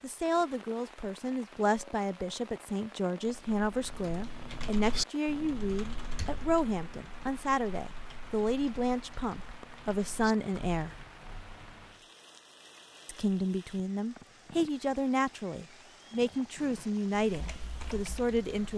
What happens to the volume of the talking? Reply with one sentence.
The loudness of the talking stays about the same.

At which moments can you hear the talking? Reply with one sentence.
The talking can be heard from 0.0 to 10.9 s and from 13.1 to 18.7 s.